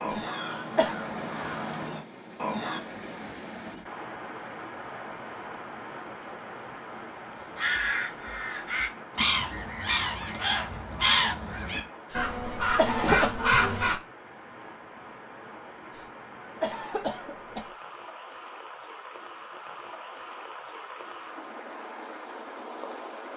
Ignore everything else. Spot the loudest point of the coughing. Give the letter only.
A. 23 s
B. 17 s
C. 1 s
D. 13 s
D.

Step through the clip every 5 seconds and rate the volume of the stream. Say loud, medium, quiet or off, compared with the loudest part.
loud, loud, medium, loud, loud.